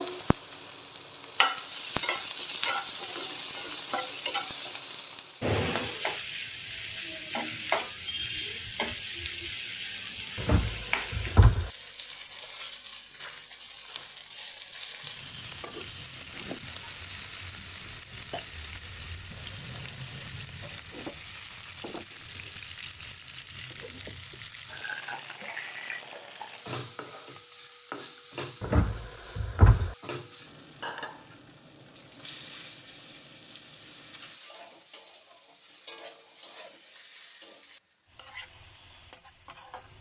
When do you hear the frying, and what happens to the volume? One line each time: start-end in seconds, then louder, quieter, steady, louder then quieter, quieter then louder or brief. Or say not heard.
0.0-39.9 quieter.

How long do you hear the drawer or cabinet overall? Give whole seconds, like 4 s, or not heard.
3 s.